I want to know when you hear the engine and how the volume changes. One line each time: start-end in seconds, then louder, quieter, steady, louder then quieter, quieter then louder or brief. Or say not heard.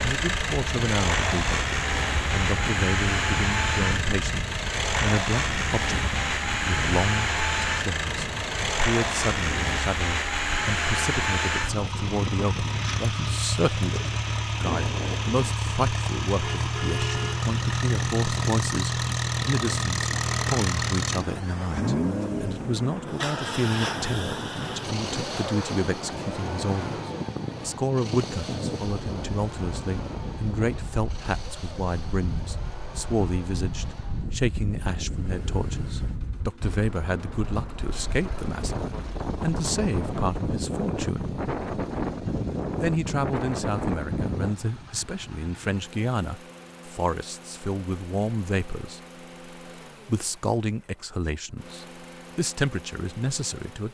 0.0-53.8 quieter.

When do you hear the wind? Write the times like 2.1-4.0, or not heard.
0.0-44.5.